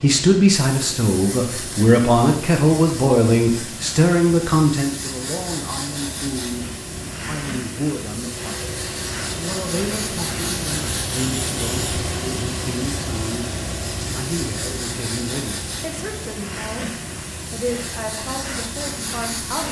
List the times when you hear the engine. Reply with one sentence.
You can hear the engine from 0.0 to 19.6 s.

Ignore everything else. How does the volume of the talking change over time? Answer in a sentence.
The volume of the talking goes down.